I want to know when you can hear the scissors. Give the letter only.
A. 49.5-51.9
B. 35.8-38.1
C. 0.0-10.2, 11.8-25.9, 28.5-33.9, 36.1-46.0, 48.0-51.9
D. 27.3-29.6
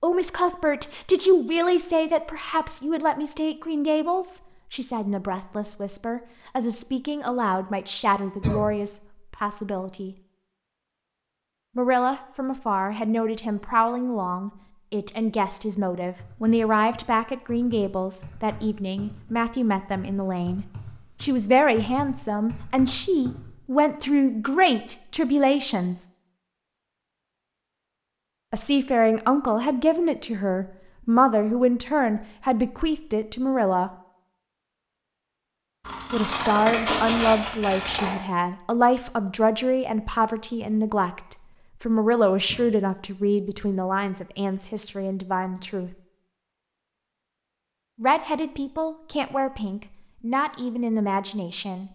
B.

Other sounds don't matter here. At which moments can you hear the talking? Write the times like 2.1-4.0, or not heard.
0.0-10.2, 11.8-25.9, 28.5-33.9, 36.1-46.0, 48.0-51.9.